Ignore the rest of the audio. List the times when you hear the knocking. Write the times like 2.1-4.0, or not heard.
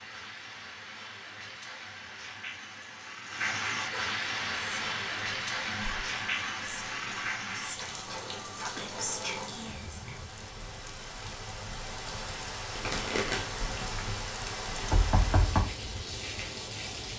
14.9-15.7.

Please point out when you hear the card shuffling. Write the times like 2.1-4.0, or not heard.
12.7-13.5.